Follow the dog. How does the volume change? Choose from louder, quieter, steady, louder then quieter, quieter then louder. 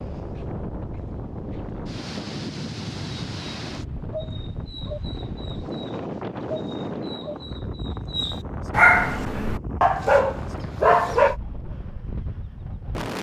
louder.